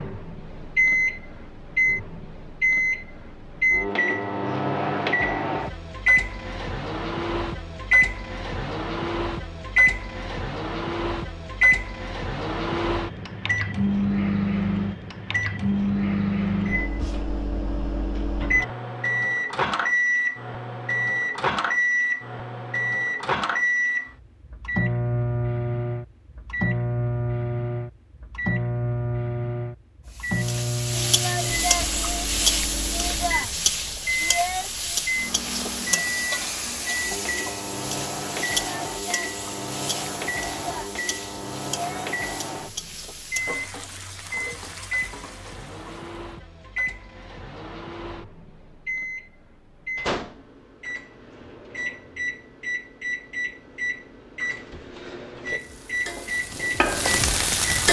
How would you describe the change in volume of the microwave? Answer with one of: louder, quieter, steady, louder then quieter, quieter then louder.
quieter.